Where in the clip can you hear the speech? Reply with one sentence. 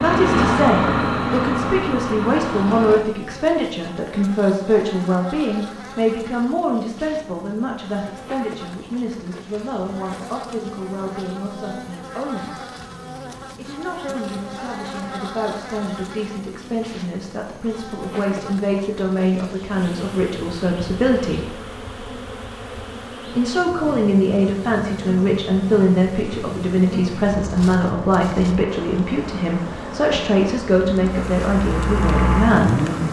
You can hear the speech from 0.0 to 12.6 s, from 13.6 to 21.6 s and from 23.4 to 32.9 s.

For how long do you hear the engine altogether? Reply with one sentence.
The engine can be heard for 9 seconds in total.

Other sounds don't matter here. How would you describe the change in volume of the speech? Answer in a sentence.
The volume of the speech goes down, then up.